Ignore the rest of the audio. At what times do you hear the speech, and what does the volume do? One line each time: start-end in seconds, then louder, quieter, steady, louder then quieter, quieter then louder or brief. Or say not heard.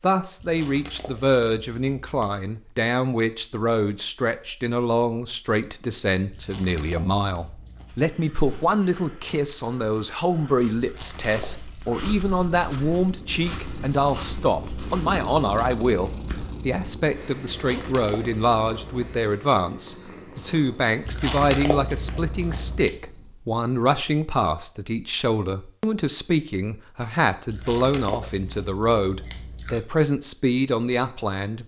0.0-31.6 steady.